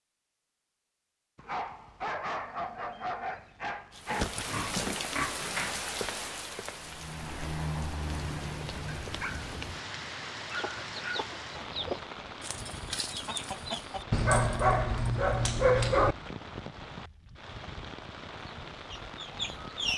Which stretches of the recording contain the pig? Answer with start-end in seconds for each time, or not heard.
4.0-5.8.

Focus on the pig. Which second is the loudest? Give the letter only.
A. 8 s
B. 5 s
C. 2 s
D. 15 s
B.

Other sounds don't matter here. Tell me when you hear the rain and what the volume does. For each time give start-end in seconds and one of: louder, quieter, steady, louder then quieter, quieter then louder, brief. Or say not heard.
3.9-19.9 quieter.